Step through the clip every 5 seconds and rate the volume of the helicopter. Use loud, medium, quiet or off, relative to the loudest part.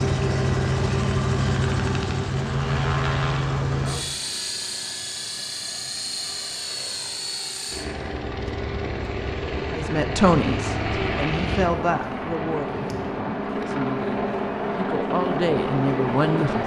loud, medium, loud, loud.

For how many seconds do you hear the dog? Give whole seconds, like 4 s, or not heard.
not heard.